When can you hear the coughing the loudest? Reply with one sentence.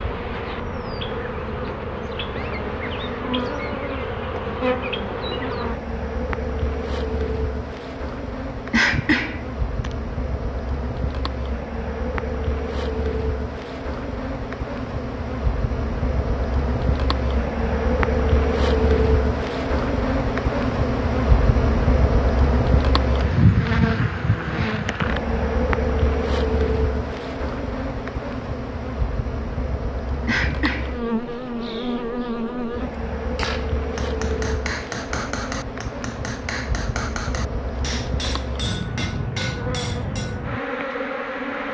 The loudest moment of the coughing is at 9 seconds.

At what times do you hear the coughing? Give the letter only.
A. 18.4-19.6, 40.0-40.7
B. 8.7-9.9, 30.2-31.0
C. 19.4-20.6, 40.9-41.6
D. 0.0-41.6
B.